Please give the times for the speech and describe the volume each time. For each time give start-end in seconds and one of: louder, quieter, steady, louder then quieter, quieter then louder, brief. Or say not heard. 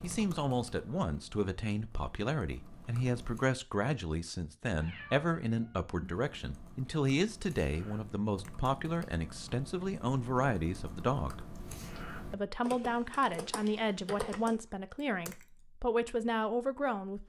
0.0-11.4 steady
12.3-17.2 steady.